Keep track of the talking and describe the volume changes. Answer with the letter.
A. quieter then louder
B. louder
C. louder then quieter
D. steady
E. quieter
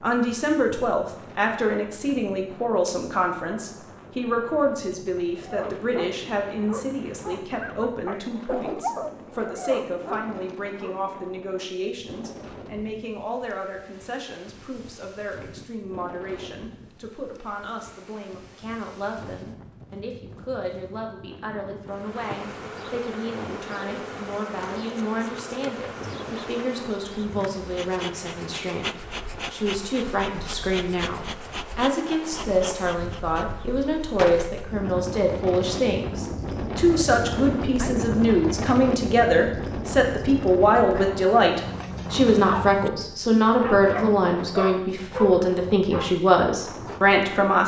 A.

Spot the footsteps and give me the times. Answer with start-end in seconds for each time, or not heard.
not heard.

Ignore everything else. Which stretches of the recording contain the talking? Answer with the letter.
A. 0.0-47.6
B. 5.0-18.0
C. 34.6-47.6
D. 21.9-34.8
A.